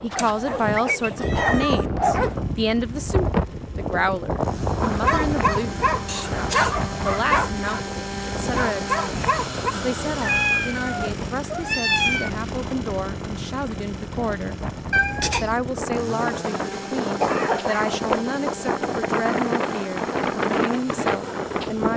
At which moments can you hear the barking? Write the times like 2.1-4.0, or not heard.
0.0-2.4, 4.8-9.8.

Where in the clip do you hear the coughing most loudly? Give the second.
17 s.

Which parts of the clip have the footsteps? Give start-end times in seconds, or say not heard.
not heard.